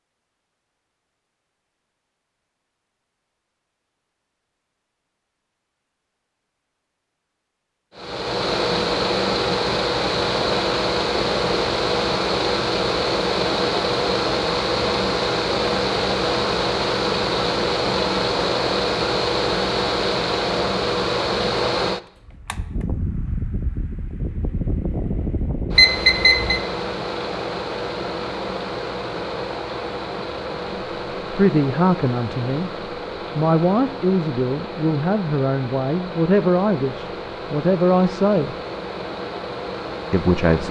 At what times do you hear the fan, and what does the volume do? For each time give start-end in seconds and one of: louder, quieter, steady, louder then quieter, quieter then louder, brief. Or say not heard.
8.0-40.6 quieter.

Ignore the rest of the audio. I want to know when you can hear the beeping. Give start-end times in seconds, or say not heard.
25.8-26.6.